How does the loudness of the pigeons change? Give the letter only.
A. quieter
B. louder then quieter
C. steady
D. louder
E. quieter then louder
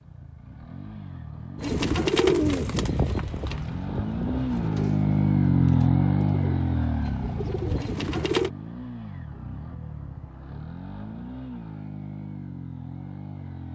E.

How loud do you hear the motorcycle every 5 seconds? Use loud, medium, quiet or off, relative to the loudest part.
medium, loud, quiet.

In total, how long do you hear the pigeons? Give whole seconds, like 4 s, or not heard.
7 s.